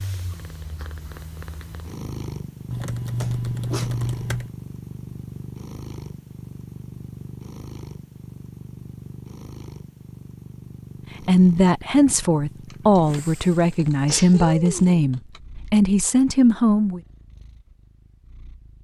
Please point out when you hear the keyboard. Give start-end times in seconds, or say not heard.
2.7-4.5, 12.7-15.4.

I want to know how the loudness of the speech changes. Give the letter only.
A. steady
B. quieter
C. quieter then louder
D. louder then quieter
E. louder
A.